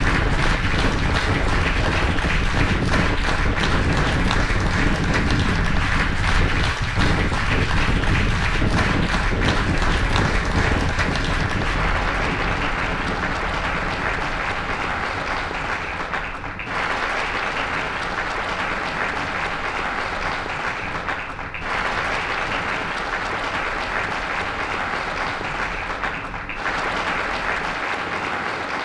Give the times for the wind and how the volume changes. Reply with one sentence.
The wind can be heard from 0.0 to 28.7 s, getting quieter.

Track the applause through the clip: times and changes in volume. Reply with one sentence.
The applause can be heard from 0.0 to 28.7 s, at a steady volume.